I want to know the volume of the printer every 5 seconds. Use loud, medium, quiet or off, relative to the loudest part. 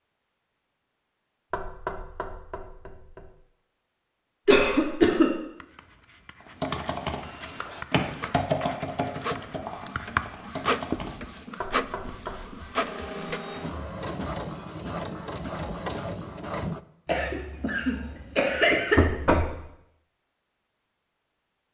off, medium, loud, loud, off.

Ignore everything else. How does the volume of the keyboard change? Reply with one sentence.
The loudness of the keyboard goes up, then down.